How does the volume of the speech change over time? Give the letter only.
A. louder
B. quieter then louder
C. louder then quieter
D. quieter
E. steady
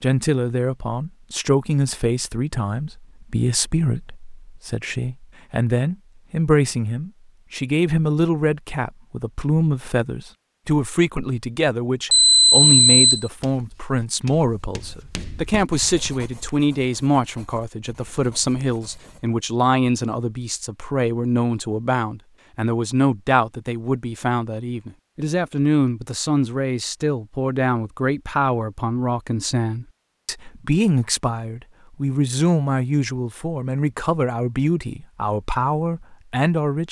E.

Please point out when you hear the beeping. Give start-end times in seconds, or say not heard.
12.1-13.2.